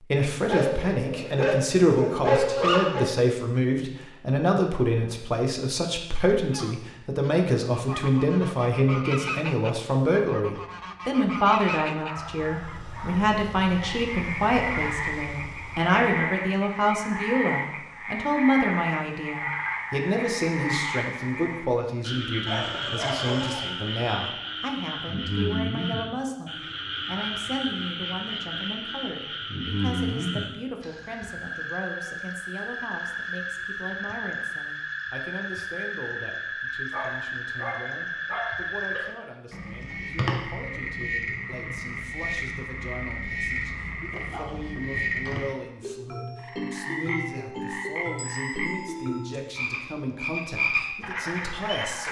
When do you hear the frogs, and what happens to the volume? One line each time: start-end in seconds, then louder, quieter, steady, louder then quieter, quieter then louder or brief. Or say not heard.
13.7-52.0 steady.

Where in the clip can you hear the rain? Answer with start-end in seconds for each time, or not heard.
not heard.